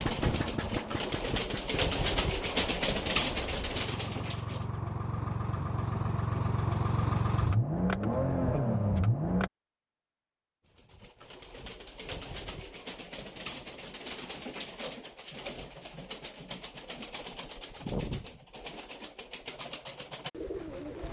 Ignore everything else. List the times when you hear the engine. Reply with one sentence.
The engine can be heard from 0.0 to 9.5 s.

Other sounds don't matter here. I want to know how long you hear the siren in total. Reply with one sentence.
The siren can't be heard in this clip.